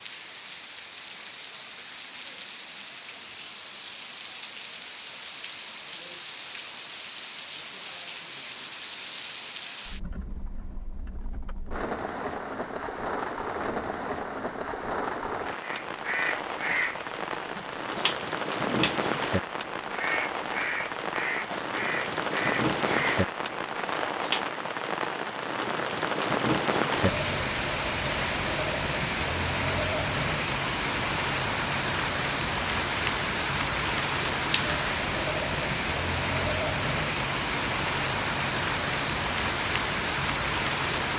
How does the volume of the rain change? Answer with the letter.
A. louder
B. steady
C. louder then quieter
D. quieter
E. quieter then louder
A.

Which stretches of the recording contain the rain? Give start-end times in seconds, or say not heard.
0.0-41.1.